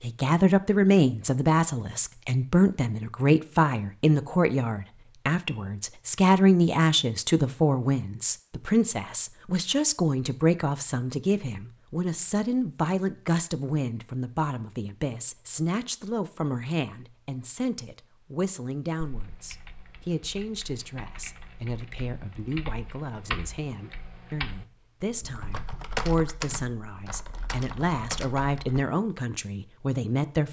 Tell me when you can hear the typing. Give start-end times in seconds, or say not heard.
19.0-28.9.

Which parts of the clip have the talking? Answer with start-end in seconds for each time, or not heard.
0.0-30.4.